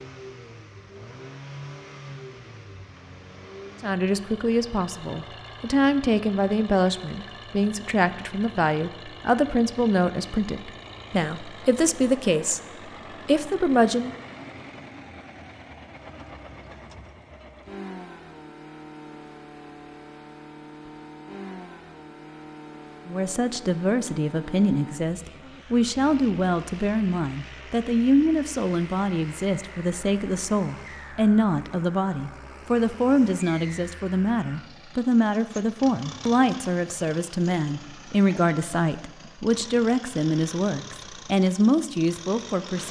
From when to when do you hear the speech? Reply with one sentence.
You can hear the speech from 3.8 to 12.6 s, from 13.2 to 14.1 s and from 23.1 to 42.8 s.